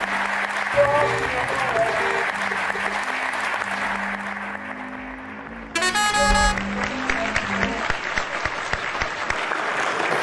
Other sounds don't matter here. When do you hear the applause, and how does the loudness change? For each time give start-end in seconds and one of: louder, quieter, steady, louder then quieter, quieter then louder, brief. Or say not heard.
0.0-10.1 quieter then louder.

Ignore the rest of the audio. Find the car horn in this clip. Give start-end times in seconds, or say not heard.
0.9-3.0, 5.8-6.6.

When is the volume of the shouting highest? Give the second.
1 s.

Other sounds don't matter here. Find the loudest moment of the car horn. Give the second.
6 s.